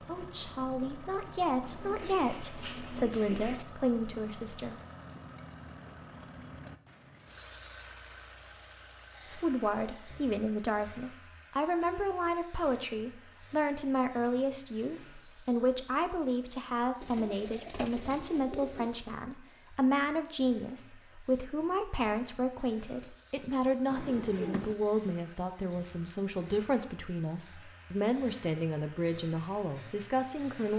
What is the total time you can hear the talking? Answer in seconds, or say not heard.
26 s.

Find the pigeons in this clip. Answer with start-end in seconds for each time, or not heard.
1.6-3.6, 17.0-18.9, 23.9-24.8.